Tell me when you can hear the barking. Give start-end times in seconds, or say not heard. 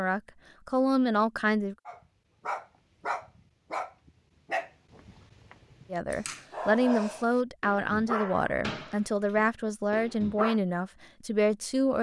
1.9-10.6.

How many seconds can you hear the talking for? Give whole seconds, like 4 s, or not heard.
8 s.